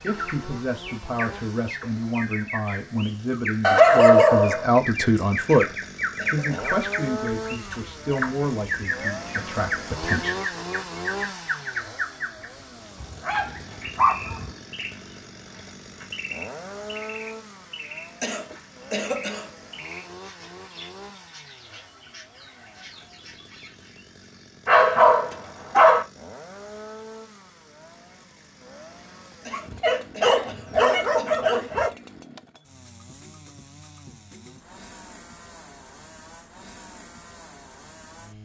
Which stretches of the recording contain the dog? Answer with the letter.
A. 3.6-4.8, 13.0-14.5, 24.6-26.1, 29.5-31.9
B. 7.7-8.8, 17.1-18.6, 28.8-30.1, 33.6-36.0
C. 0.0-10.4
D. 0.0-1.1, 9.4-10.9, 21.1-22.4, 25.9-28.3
A.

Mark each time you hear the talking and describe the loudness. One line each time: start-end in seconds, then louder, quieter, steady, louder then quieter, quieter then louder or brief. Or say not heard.
0.0-10.4 louder then quieter.